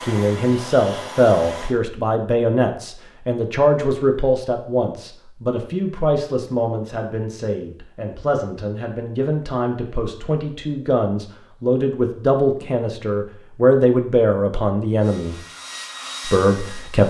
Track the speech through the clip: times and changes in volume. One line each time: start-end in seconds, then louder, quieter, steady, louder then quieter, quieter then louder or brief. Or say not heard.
0.0-15.4 quieter then louder
16.2-17.0 brief.